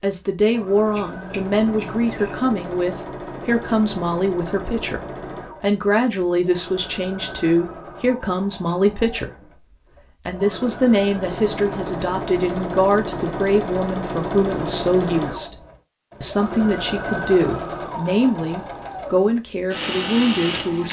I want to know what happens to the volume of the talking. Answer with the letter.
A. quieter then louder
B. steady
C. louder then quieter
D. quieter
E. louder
B.